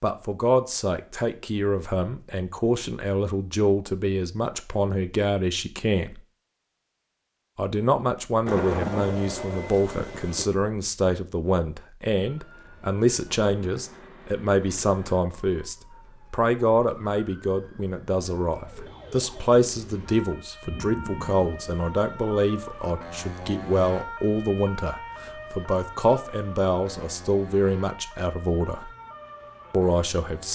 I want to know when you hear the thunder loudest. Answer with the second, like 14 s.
9 s.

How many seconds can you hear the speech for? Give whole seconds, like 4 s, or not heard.
28 s.